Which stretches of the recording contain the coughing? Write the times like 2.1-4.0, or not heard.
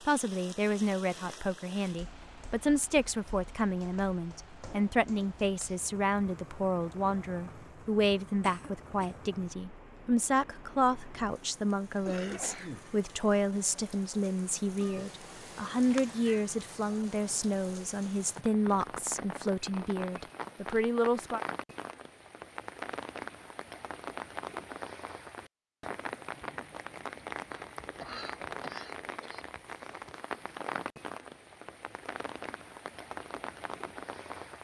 8.4-9.2, 12.1-12.8, 27.5-29.4.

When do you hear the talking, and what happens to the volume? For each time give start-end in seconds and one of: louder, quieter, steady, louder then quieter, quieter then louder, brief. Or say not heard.
0.1-21.4 steady.